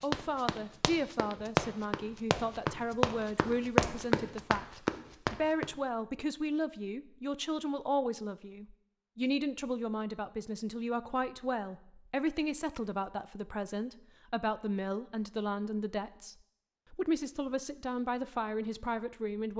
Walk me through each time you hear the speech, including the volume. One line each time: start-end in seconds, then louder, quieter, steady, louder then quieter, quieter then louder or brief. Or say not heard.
0.0-19.5 steady.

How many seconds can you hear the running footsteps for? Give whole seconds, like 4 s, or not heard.
6 s.